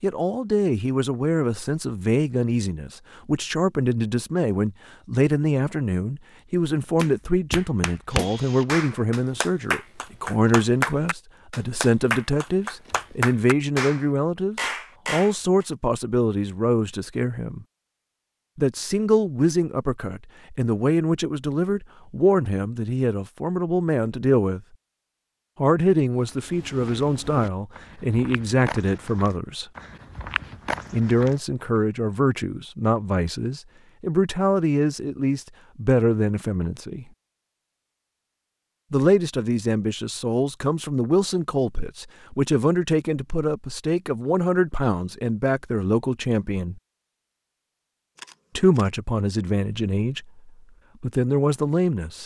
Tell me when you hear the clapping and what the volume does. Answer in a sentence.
The clapping can be heard from 7.0 to 15.3 s, at a steady volume.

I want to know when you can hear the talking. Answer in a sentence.
The talking can be heard from 0.0 to 17.6 s, from 18.6 to 24.6 s, from 25.6 to 29.6 s, from 30.9 to 37.0 s, from 38.9 to 46.8 s and from 48.5 to 52.2 s.